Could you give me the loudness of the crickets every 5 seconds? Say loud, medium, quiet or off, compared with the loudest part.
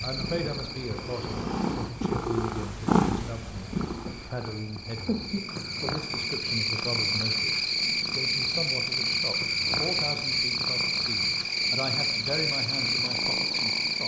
quiet, loud, loud.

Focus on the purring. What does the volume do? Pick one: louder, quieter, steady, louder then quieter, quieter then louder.
quieter.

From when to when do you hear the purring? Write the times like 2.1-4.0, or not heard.
0.0-14.0.